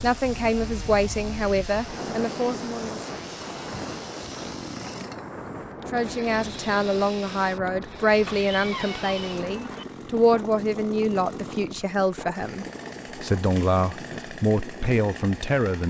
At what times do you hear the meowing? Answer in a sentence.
The meowing can be heard from 8.2 to 9.8 s.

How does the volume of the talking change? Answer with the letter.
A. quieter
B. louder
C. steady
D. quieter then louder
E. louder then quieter
C.